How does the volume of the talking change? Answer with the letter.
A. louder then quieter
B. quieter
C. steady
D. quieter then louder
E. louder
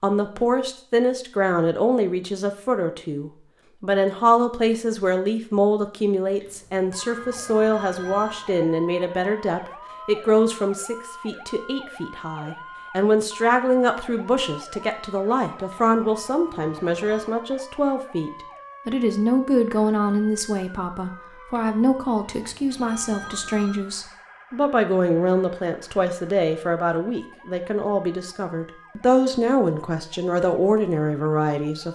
C.